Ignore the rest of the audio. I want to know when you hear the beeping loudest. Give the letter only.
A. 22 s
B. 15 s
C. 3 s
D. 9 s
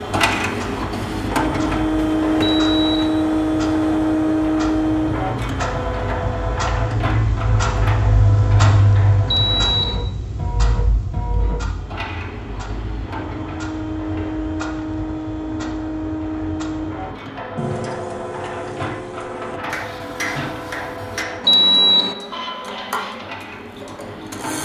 A.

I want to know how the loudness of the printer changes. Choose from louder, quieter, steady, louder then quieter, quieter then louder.
quieter.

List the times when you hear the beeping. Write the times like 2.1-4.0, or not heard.
2.4-3.0, 9.2-10.0, 21.4-22.1.